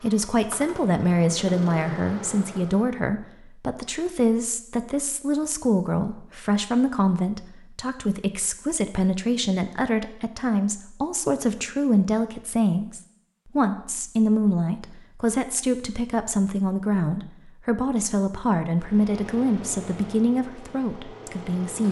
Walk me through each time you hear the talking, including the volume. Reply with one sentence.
The talking can be heard from 0.0 to 21.8 s, at a steady volume.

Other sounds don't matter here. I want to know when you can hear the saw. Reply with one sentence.
The saw can't be heard in this clip.